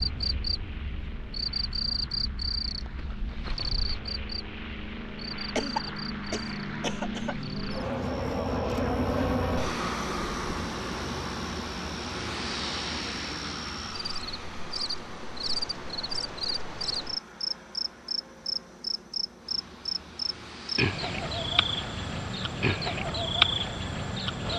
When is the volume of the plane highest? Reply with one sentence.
The loudest moment of the plane is at 9 seconds.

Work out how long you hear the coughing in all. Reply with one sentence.
The coughing can be heard for 2 seconds in total.